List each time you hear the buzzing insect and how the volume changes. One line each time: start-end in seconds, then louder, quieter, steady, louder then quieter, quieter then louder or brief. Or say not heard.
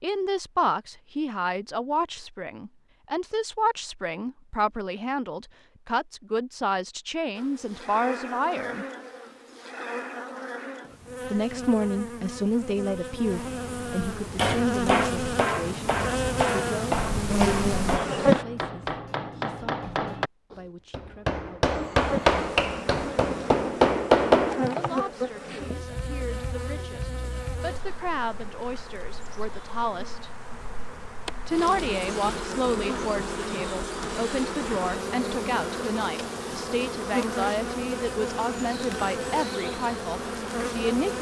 7.3-18.4 louder
21.9-41.1 quieter then louder.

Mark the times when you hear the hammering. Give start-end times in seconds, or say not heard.
14.2-25.0.